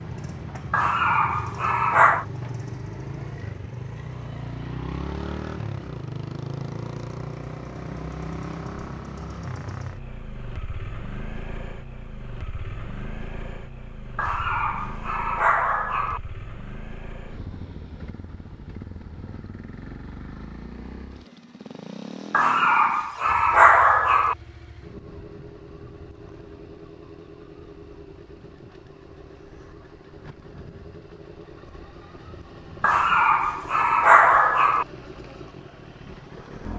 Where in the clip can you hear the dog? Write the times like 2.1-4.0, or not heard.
0.7-2.2, 14.2-16.2, 22.3-24.4, 32.8-34.9.